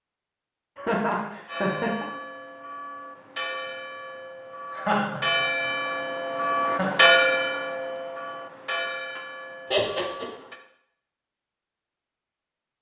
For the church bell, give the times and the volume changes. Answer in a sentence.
You can hear the church bell from 1.4 to 10.6 s, getting louder then quieter.